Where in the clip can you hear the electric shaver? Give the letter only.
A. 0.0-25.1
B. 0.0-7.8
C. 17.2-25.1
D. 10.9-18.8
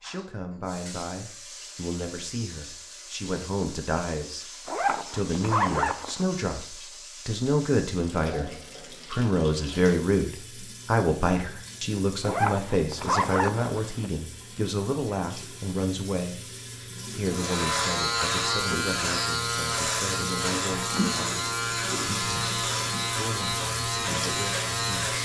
C.